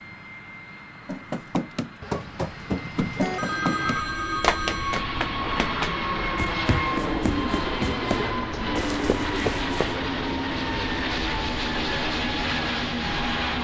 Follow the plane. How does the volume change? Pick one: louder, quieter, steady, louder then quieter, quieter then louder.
louder.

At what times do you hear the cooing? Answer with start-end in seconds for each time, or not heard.
2.0-4.0, 7.0-9.6.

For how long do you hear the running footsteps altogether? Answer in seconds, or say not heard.
9 s.